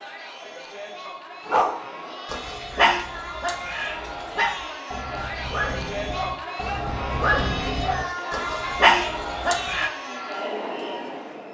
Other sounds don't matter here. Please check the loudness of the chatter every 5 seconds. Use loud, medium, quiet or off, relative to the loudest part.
medium, loud, loud.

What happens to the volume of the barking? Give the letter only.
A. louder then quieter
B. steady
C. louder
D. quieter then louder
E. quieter
D.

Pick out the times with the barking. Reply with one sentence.
The barking can be heard from 1.4 to 9.9 s.